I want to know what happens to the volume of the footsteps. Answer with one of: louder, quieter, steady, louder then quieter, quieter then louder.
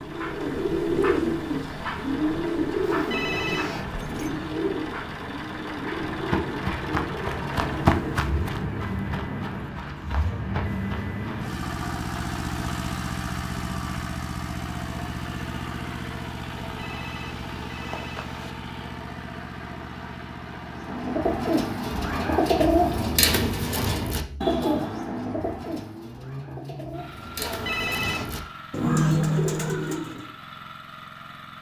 louder then quieter.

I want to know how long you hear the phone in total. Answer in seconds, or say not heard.
4 s.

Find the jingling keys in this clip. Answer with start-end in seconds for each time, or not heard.
3.3-4.5.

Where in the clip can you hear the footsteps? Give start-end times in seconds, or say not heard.
6.0-11.5.